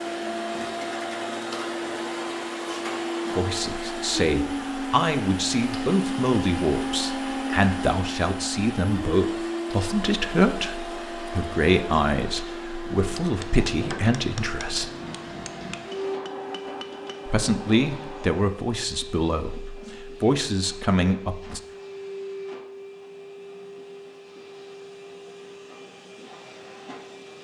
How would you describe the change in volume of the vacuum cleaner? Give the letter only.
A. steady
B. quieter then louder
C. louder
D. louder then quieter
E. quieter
E.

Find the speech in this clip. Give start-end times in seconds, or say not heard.
3.4-14.9, 17.2-21.6.